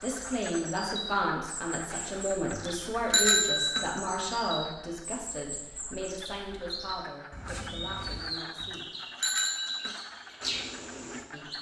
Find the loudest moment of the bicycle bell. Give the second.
3 s.